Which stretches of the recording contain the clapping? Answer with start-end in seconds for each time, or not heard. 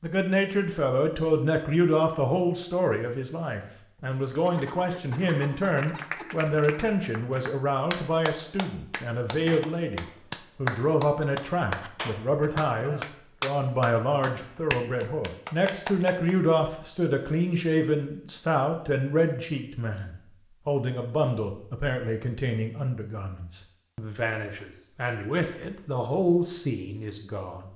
5.7-16.4.